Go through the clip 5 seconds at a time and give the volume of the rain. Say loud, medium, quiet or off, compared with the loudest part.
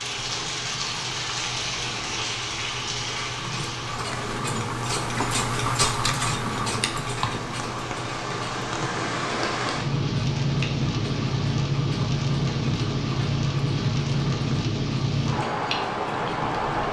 medium, medium, loud, loud.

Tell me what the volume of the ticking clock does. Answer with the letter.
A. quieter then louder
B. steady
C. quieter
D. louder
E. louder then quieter
E.